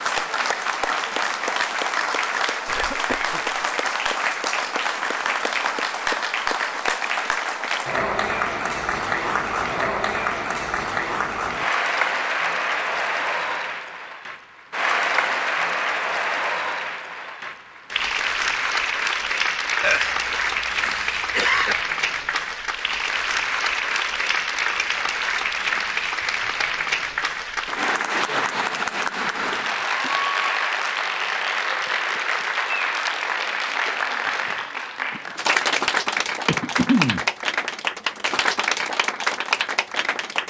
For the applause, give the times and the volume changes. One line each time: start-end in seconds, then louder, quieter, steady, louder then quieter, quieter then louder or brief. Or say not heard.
0.0-40.4 steady.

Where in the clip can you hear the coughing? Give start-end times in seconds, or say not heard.
2.6-3.5, 19.8-21.8, 36.1-37.2.